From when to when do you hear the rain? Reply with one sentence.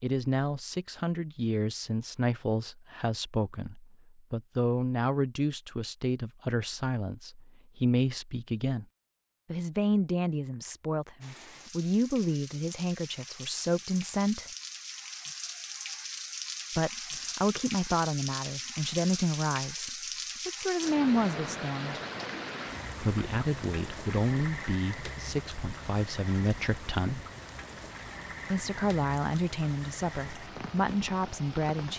The rain can be heard from 11.2 to 31.9 s.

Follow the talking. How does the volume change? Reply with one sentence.
The loudness of the talking stays about the same.